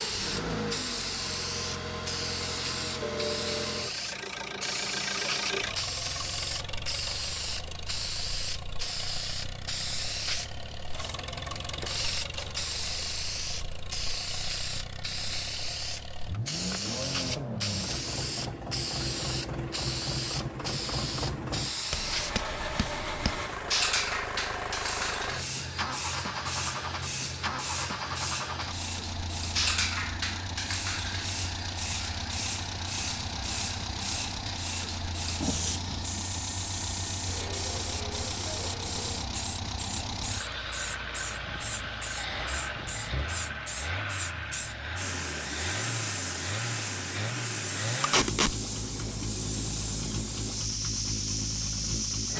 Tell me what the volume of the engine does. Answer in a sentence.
The volume of the engine stays about the same.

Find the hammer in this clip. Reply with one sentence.
The hammer can be heard from 21.9 to 23.4 s.